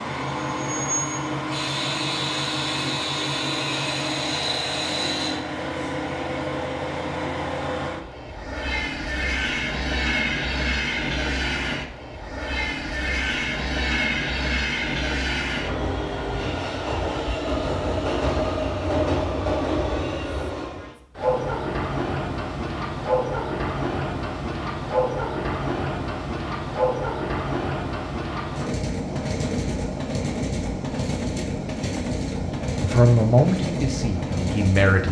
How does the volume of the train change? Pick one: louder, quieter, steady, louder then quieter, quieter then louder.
steady.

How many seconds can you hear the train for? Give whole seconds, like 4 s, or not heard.
35 s.